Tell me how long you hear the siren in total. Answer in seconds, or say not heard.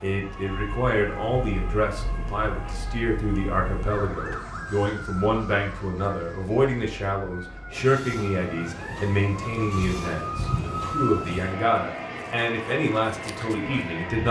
14 s.